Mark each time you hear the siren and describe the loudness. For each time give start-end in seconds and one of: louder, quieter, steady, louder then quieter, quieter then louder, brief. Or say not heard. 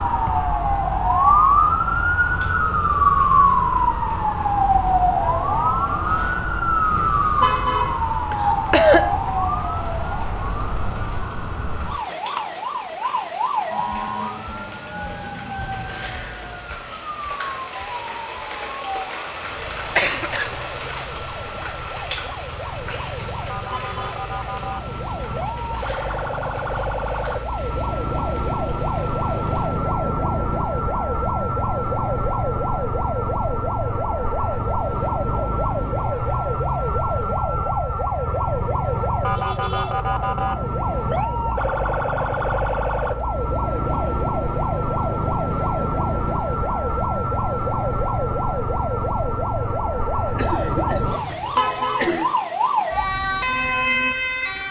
0.0-54.6 quieter then louder.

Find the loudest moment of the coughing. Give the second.
9 s.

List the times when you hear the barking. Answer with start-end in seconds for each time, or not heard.
not heard.